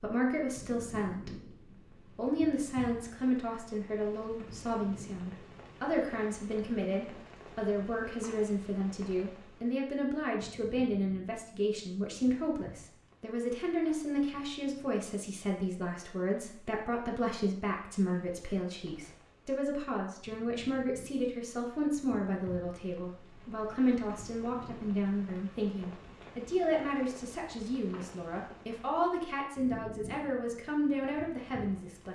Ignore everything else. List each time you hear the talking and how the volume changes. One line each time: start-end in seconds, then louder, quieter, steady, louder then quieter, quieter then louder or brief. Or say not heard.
0.0-1.6 brief
2.1-32.0 steady.